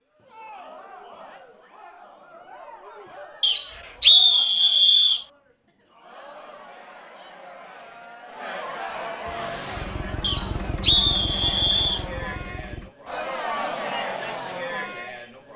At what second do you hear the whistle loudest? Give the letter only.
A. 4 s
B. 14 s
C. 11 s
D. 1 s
A.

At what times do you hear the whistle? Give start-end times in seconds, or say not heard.
3.4-5.2, 10.2-12.1.